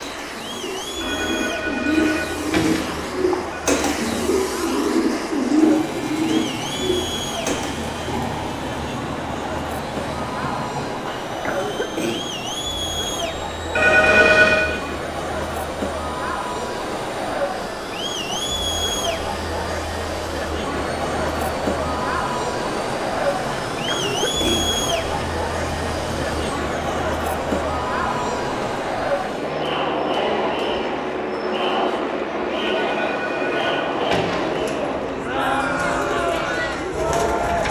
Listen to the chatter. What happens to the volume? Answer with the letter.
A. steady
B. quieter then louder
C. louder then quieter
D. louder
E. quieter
D.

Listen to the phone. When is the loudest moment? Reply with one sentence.
The loudest moment of the phone is at 14 seconds.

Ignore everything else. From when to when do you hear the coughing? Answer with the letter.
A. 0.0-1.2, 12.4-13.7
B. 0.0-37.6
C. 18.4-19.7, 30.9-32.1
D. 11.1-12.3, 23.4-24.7
D.